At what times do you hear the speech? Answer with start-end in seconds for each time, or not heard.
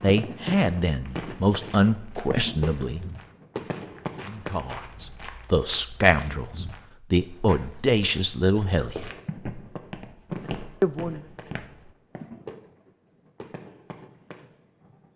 0.0-3.0, 4.2-9.1, 10.8-11.2.